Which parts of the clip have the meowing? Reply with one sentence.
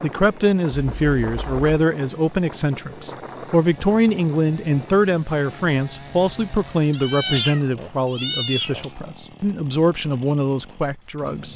The meowing can be heard from 0.7 to 1.8 s and from 6.9 to 8.9 s.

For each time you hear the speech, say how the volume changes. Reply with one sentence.
The speech can be heard from 0.0 to 11.5 s, at a steady volume.